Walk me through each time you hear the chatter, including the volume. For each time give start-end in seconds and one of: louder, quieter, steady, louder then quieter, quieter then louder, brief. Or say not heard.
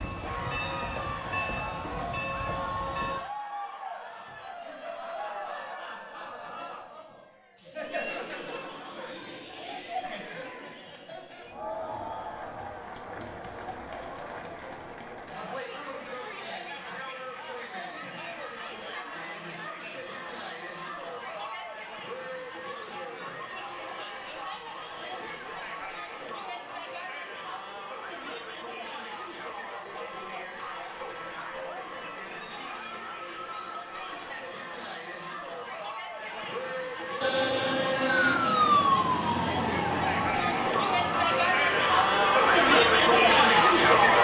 0.1-44.2 louder.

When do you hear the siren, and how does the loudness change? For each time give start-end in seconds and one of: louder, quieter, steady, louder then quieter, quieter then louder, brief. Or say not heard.
37.2-44.2 quieter.